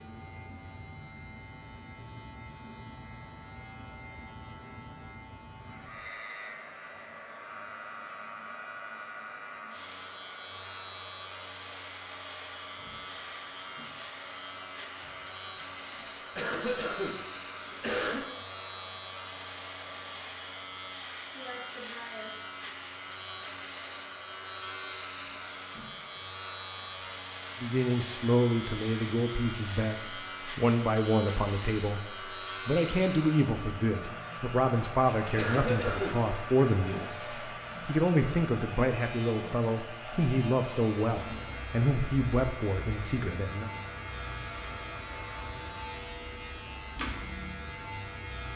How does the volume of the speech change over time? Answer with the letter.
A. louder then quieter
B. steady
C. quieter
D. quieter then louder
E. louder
B.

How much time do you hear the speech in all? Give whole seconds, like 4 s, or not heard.
16 s.